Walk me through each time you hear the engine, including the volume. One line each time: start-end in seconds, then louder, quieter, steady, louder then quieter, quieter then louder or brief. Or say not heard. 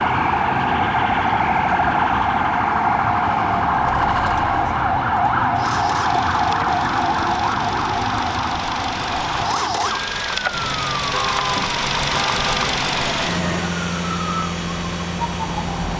0.0-15.9 louder.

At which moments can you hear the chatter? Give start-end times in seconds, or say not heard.
not heard.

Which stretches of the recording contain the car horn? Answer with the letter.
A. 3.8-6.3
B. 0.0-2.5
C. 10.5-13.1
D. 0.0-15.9
C.